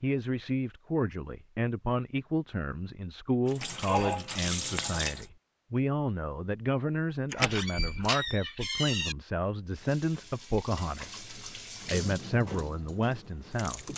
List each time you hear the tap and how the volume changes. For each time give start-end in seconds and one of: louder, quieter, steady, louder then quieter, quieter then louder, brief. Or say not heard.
3.5-5.2 brief
9.7-13.9 louder then quieter.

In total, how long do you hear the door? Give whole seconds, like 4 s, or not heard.
3 s.